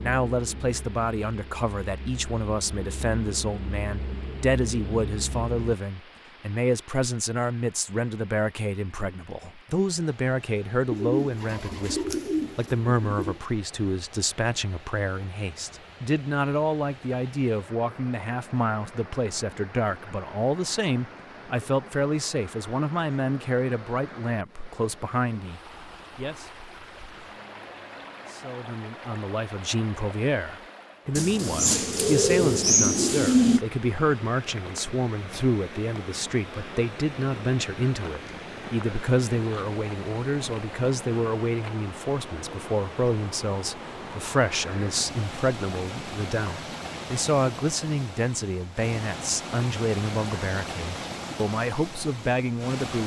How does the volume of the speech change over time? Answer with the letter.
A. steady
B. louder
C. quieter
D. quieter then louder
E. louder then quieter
A.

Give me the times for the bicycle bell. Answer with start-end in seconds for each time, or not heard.
not heard.